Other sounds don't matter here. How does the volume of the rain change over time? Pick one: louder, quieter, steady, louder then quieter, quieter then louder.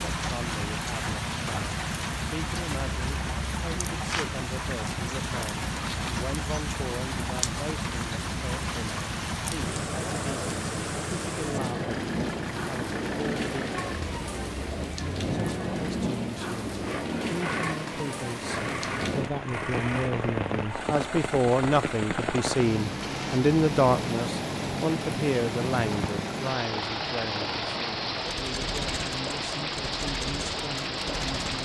steady.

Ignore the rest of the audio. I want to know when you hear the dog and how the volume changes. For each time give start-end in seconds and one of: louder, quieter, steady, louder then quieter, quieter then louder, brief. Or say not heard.
not heard.